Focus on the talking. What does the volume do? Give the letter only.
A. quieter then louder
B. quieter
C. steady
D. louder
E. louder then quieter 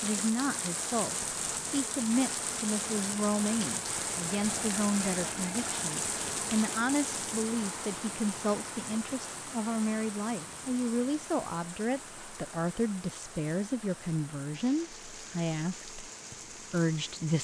C.